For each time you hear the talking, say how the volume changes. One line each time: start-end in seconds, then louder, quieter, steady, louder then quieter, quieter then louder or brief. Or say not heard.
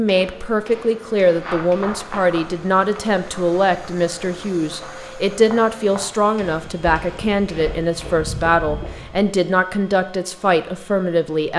0.0-11.5 steady.